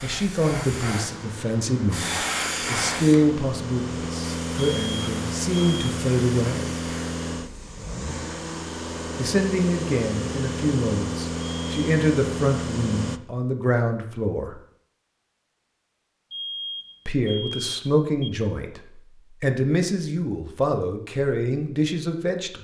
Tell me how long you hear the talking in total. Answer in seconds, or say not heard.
18 s.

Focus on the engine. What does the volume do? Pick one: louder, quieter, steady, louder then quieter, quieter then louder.
louder.